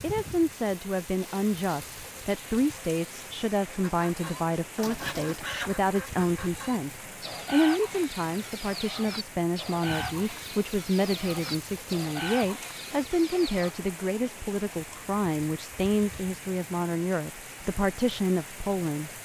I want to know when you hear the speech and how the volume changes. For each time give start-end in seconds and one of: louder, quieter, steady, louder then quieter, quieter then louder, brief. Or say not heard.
0.0-19.1 steady.